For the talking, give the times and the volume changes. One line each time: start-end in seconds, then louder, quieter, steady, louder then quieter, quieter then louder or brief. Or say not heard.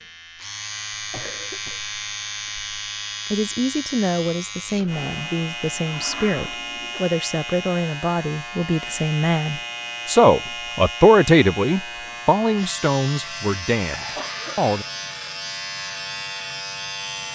3.3-14.8 louder then quieter.